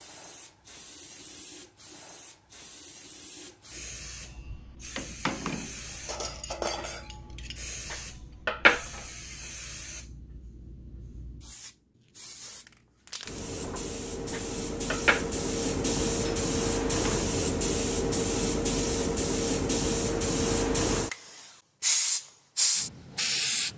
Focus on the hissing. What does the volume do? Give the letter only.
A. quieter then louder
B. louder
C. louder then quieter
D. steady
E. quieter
B.